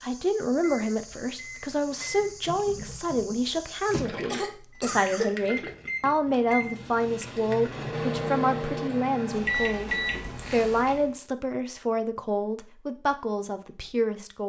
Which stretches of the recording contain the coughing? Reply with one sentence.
You can hear the coughing from 4.2 to 5.3 s.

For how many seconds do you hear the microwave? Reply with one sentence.
The microwave can be heard for 11 seconds in total.